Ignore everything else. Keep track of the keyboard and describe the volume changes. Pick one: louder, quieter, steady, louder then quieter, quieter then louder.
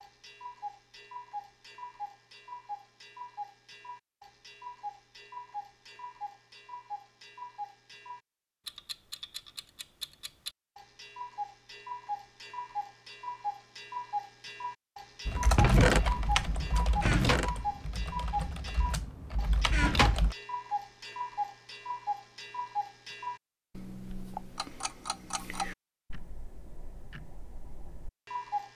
quieter then louder.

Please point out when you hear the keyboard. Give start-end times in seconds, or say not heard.
15.2-20.4.